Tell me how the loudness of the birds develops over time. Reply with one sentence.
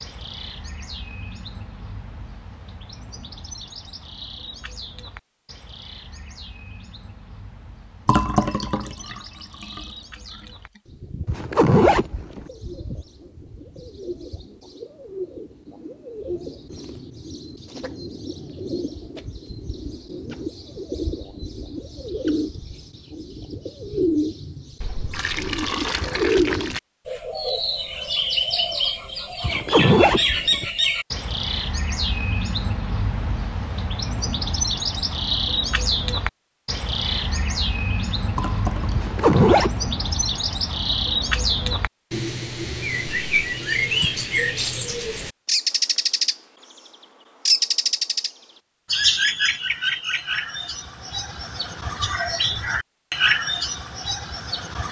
The loudness of the birds goes up.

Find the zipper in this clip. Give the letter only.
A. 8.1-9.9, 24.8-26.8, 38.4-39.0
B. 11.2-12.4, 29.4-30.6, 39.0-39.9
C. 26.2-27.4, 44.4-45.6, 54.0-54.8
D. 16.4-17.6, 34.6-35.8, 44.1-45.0
B.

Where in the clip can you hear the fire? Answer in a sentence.
You can't hear the fire here.